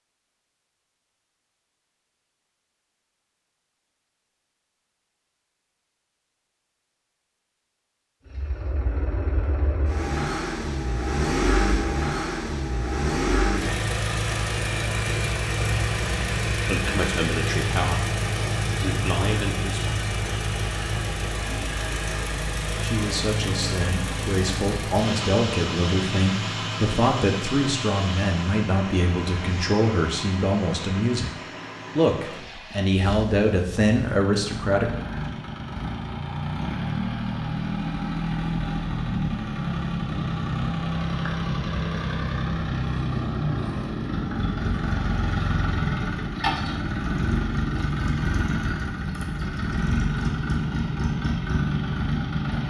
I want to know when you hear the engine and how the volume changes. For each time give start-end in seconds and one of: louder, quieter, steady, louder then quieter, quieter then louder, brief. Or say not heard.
8.2-52.6 quieter then louder.